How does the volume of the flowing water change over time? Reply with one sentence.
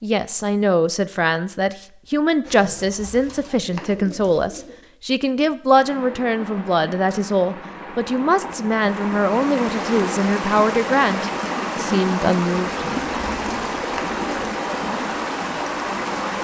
The volume of the flowing water goes up.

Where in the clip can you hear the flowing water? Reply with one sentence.
You can hear the flowing water from 5.8 to 16.3 s.